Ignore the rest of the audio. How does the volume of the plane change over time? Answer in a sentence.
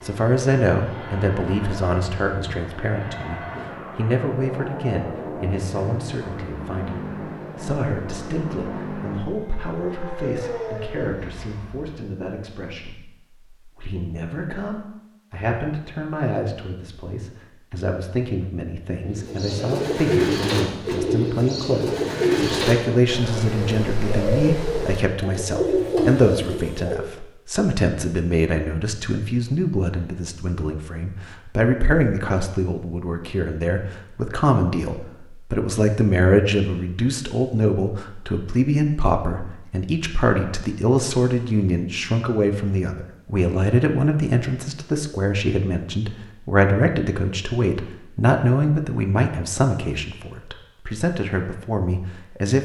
The loudness of the plane stays about the same.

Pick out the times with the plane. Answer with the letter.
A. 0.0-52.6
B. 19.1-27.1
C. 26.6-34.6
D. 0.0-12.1
D.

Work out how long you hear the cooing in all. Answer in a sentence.
The cooing can be heard for 8 seconds in total.